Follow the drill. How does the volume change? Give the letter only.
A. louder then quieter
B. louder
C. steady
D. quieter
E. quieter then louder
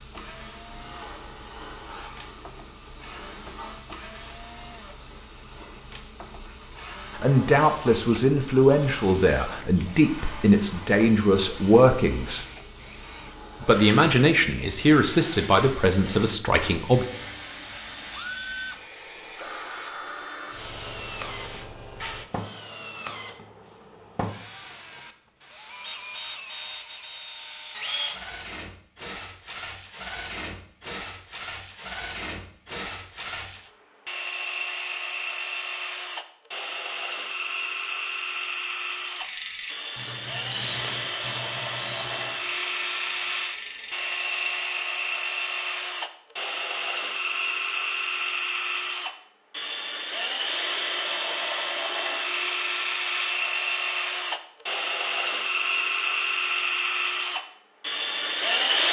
B.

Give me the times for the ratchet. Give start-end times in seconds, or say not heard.
39.0-44.5.